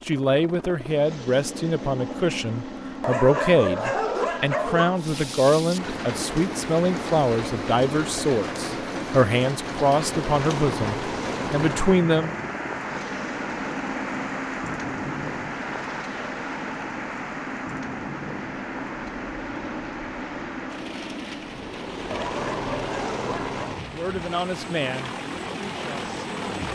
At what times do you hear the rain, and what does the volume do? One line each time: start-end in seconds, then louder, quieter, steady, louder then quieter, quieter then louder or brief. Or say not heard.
5.0-26.6 quieter.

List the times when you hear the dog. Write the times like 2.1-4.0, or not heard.
3.0-5.0, 22.1-23.6.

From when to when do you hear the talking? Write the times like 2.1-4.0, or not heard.
0.1-12.3, 23.8-26.4.